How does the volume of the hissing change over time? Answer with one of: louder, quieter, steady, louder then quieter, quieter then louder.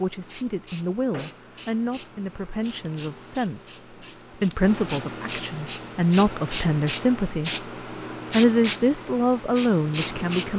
louder.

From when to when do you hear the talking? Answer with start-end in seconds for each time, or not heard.
0.0-7.5, 8.3-10.5.